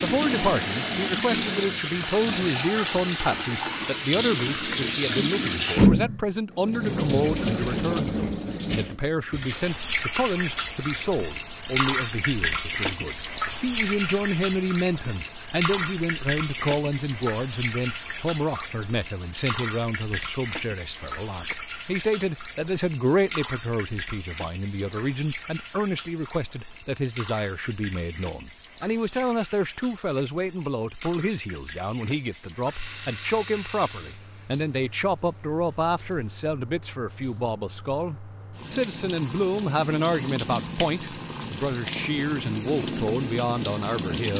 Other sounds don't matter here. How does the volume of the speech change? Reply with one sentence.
The volume of the speech stays about the same.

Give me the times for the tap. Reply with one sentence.
The tap can be heard from 0.0 to 44.3 s.